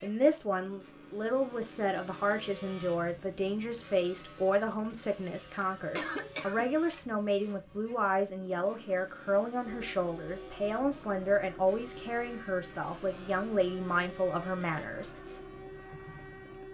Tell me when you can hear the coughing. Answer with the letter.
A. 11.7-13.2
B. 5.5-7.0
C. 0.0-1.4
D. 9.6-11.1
B.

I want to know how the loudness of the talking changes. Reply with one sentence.
The volume of the talking stays about the same.